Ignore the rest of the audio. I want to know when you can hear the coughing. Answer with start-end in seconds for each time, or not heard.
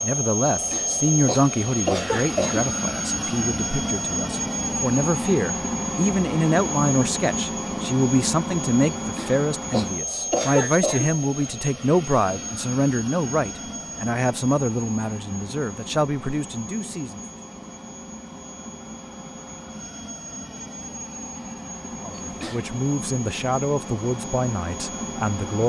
0.7-2.6, 9.2-11.5, 22.2-22.7.